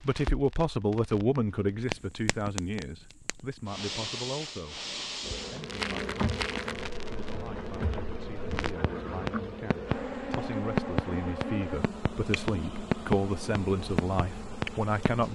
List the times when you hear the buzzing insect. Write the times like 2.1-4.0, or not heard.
5.2-15.2.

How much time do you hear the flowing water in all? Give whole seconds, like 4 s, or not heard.
not heard.